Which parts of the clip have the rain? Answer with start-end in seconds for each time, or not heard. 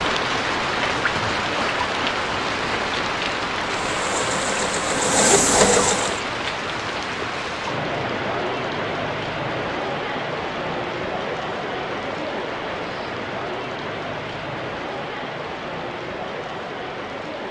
0.0-17.4.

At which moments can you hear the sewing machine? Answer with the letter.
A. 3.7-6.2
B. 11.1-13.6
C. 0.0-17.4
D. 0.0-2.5
A.